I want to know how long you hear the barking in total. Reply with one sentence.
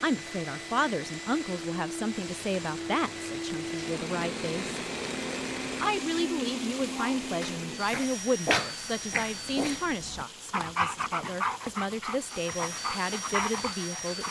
You can hear the barking for 7 seconds altogether.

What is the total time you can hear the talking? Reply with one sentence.
The talking can be heard for 13 seconds in total.